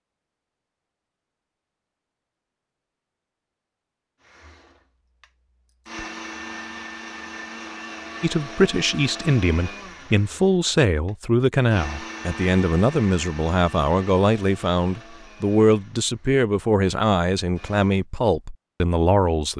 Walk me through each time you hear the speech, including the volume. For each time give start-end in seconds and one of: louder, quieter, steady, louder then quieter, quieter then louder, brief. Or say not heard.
8.2-19.5 steady.